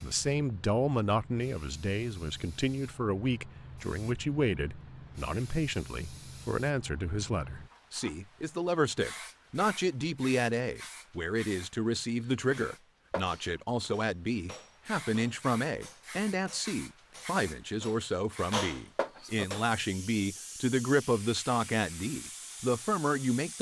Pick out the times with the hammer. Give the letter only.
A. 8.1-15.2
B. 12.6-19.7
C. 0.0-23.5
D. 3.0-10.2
B.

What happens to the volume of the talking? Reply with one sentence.
The loudness of the talking stays about the same.